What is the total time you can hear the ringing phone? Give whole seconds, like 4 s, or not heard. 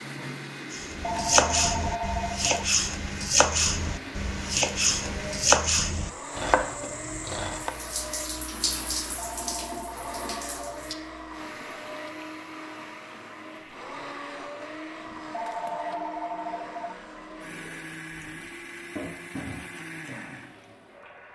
5 s.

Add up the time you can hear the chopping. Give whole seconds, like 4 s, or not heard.
7 s.